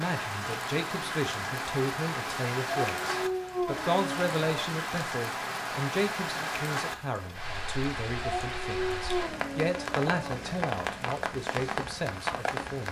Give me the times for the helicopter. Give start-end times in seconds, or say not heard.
not heard.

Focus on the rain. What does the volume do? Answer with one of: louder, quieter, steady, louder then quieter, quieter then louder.
steady.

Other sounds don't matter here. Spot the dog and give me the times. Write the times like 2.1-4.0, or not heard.
2.6-4.5, 8.2-10.4.